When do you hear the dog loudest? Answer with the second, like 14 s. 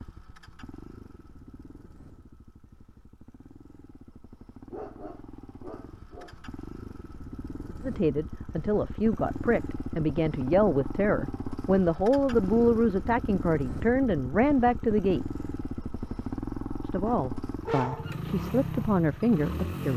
18 s.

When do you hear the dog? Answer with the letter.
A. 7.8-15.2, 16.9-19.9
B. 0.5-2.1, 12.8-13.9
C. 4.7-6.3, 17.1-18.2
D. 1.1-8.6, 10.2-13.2
C.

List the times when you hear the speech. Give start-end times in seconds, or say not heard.
7.8-15.2, 16.9-19.9.